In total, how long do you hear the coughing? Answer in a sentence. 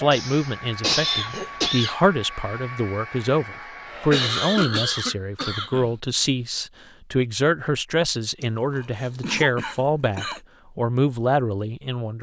You can hear the coughing for 6 seconds altogether.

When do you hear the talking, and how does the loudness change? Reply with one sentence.
The talking can be heard from 0.0 to 12.1 s, at a steady volume.